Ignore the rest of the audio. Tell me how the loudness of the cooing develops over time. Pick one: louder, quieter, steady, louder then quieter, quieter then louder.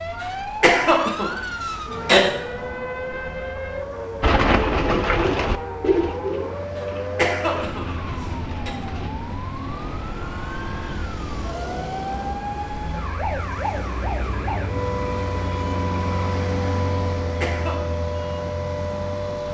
quieter.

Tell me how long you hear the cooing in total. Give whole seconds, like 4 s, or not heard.
5 s.